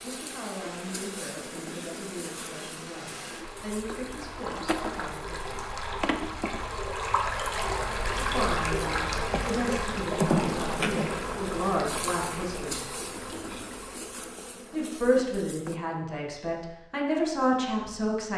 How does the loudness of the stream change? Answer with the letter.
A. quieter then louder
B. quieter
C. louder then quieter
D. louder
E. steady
C.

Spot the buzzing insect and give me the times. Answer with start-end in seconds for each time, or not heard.
0.0-15.8.